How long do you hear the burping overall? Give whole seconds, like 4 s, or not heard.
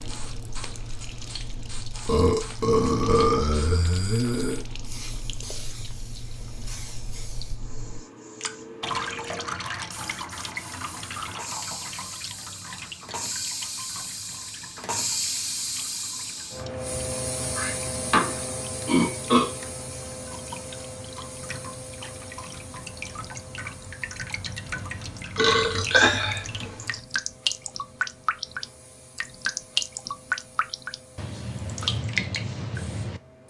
6 s.